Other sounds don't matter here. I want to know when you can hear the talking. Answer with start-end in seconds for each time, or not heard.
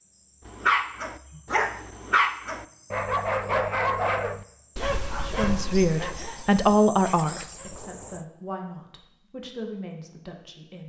5.2-10.8.